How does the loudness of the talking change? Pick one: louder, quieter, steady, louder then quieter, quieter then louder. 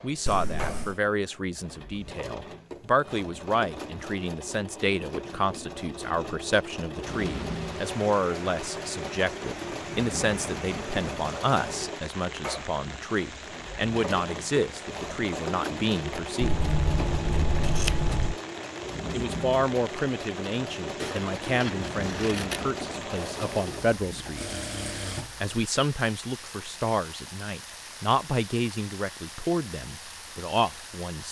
steady.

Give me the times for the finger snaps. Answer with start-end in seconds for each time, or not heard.
not heard.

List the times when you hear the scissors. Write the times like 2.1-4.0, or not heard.
0.2-0.9, 16.4-18.4, 21.0-22.7.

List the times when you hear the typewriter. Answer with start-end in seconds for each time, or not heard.
not heard.